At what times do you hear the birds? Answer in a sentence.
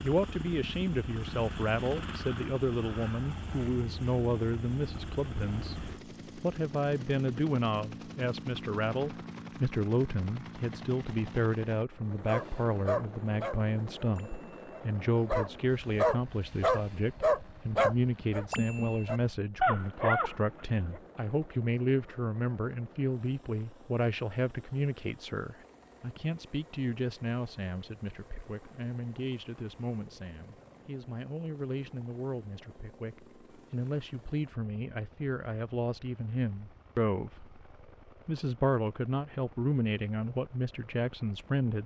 The birds can't be heard in this clip.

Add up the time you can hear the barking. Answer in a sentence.
You can hear the barking for 9 seconds altogether.